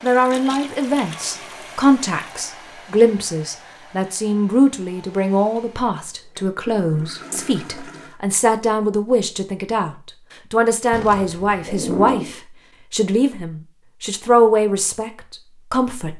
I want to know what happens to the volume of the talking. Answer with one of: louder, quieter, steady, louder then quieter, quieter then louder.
steady.